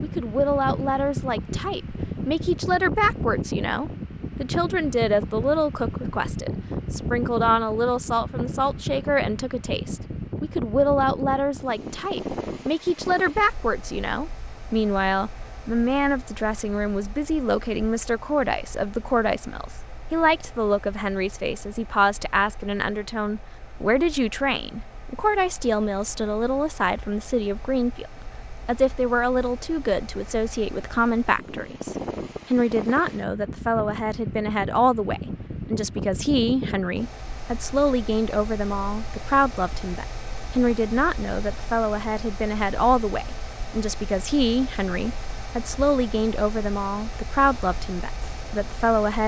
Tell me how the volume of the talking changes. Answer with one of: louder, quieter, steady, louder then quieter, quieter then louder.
steady.